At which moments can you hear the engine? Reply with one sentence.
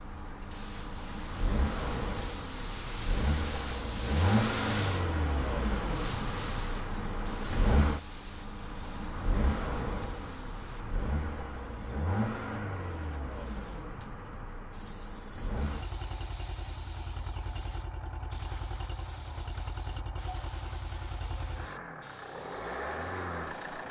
You can hear the engine from 0.0 to 23.8 s.